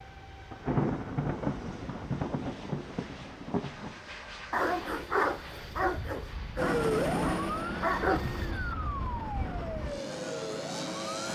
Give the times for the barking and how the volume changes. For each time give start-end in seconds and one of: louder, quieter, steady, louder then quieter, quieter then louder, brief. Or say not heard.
4.5-8.8 quieter then louder.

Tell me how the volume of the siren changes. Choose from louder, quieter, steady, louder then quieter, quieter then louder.
quieter.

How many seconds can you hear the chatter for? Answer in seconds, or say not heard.
not heard.